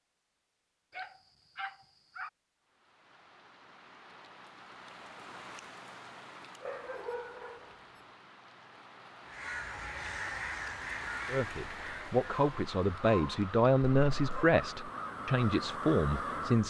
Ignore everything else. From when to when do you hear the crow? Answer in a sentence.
The crow can be heard from 9.2 to 16.6 s.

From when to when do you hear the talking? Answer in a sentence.
The talking can be heard from 11.2 to 16.6 s.